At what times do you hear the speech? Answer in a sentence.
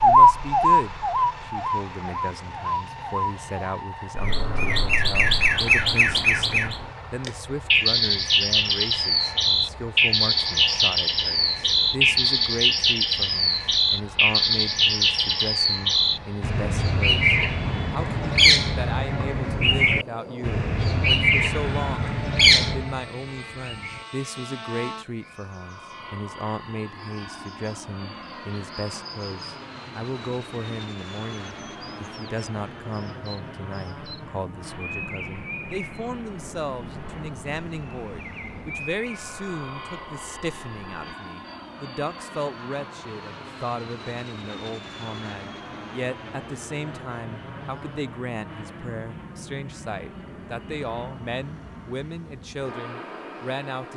The speech can be heard from 0.0 to 53.9 s.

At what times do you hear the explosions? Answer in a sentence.
The explosions can't be heard in this clip.